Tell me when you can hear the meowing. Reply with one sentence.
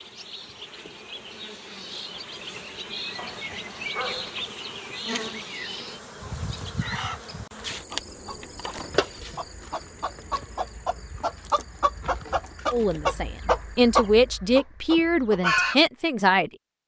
The meowing can't be heard in this clip.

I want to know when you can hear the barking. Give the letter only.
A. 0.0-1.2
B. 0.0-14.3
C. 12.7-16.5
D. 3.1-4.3
D.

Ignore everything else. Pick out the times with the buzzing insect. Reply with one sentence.
The buzzing insect can be heard from 0.0 to 14.3 s.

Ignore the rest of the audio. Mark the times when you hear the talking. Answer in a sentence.
The talking can be heard from 12.7 to 16.5 s.